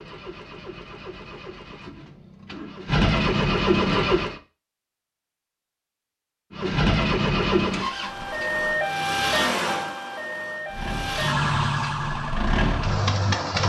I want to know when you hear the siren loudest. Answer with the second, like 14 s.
9 s.